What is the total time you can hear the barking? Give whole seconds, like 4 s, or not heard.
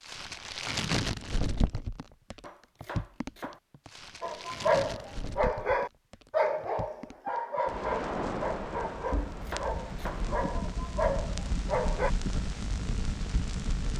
8 s.